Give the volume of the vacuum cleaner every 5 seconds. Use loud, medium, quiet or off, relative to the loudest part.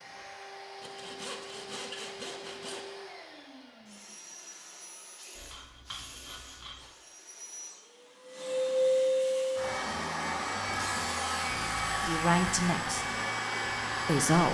quiet, loud, loud.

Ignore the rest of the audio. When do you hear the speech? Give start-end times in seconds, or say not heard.
12.1-13.2, 14.1-14.5.